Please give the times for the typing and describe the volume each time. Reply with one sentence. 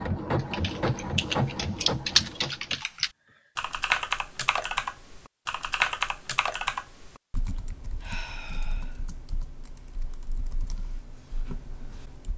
The typing can be heard from 0.3 to 12.3 s, getting quieter.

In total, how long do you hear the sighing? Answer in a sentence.
The sighing can be heard for 2 seconds in total.